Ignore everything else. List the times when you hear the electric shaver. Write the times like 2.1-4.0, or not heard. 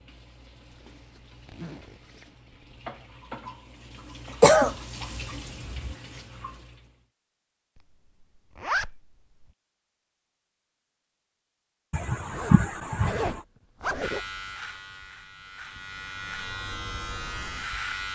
14.0-18.1.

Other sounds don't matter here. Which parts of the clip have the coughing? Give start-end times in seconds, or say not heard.
4.4-6.0, 11.9-13.4.